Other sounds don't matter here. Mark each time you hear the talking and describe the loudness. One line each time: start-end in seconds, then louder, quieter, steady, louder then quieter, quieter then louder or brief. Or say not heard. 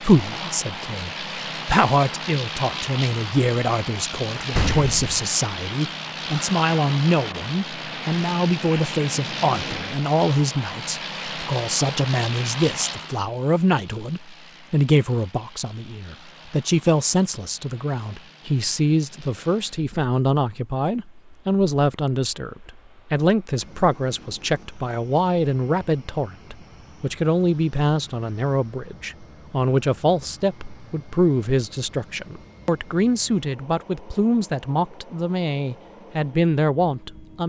0.0-37.4 steady.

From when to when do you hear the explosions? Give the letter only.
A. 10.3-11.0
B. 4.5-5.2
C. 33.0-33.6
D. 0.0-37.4
B.